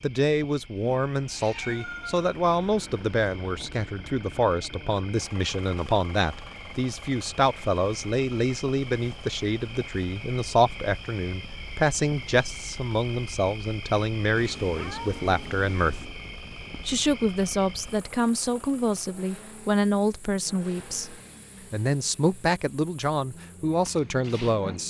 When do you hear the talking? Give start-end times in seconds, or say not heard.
0.0-16.0, 16.8-24.8.